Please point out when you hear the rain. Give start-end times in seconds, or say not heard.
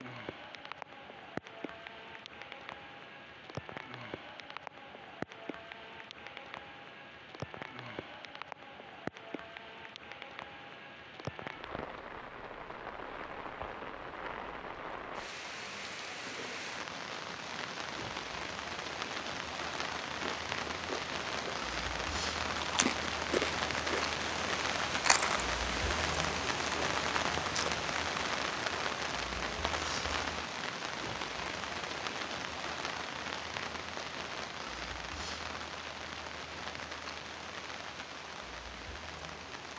0.0-39.7.